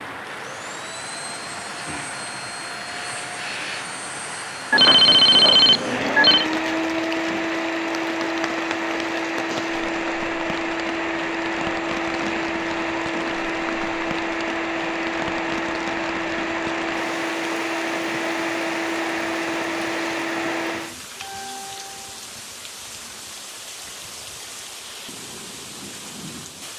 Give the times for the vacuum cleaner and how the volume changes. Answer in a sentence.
You can hear the vacuum cleaner from 0.1 to 20.9 s, getting louder.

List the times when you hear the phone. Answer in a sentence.
The phone can be heard from 4.7 to 6.5 s.